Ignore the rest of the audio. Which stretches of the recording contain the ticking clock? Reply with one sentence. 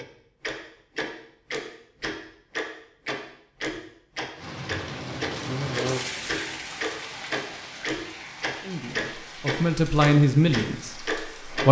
You can hear the ticking clock from 0.0 to 11.6 s.